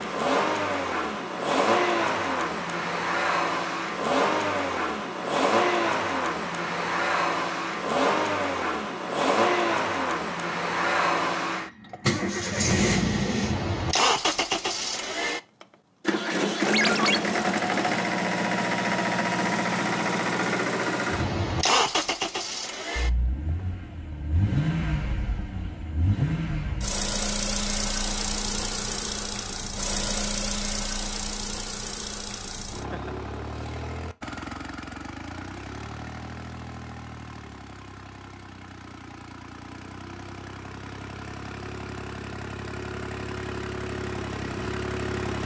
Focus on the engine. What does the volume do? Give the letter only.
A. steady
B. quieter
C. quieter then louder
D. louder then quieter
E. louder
B.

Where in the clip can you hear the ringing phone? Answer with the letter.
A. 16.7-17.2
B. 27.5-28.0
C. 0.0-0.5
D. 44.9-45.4
A.